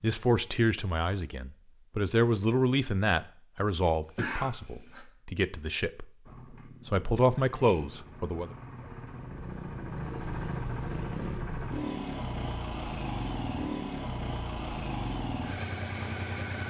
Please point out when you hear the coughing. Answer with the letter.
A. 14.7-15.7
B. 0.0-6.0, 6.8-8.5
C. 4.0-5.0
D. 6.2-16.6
C.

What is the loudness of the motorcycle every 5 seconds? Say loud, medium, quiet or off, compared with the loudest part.
off, medium, loud, loud.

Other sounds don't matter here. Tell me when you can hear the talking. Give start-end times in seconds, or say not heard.
0.0-6.0, 6.8-8.5.